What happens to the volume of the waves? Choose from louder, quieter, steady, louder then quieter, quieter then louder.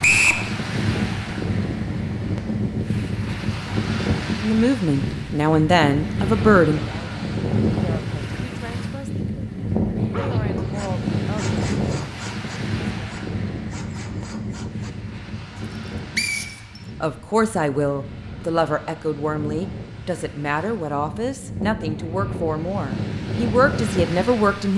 quieter then louder.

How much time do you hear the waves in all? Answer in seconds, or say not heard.
25 s.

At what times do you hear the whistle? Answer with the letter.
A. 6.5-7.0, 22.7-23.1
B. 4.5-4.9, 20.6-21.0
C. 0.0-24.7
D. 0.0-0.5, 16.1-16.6
D.